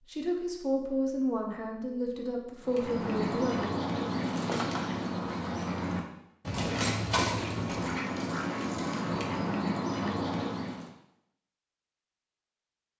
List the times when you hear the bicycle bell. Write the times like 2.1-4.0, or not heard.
not heard.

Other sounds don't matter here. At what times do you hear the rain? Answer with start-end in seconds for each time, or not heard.
not heard.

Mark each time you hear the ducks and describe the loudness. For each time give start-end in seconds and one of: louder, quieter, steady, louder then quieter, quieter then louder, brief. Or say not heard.
2.6-10.9 steady.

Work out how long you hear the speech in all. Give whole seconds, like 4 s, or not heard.
4 s.